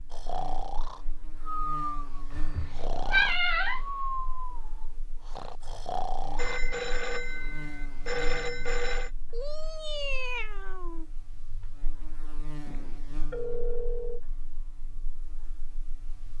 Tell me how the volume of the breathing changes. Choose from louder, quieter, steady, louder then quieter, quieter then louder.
steady.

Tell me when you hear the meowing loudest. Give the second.
3 s.